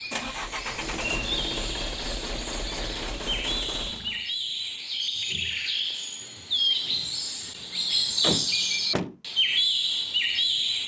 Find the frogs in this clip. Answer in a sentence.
You can't hear the frogs here.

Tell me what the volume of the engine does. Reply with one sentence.
The volume of the engine stays about the same.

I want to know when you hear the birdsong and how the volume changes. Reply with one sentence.
The birdsong can be heard from 0.0 to 10.8 s, getting louder.